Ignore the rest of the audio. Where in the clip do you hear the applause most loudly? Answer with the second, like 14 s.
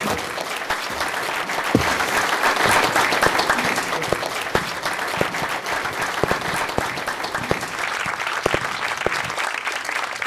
3 s.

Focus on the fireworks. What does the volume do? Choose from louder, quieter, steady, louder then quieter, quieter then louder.
quieter.